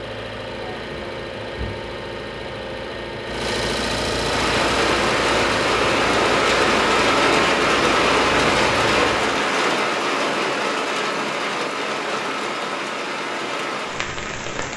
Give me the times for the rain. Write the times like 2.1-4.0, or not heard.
4.2-14.7.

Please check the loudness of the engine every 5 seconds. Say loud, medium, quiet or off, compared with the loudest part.
loud, loud, off.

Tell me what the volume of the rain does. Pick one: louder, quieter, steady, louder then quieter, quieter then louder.
quieter.